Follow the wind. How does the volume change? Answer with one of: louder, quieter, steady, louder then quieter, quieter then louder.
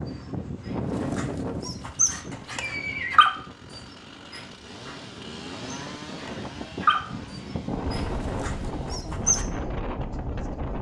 quieter then louder.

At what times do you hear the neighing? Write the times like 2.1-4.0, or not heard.
2.3-3.3.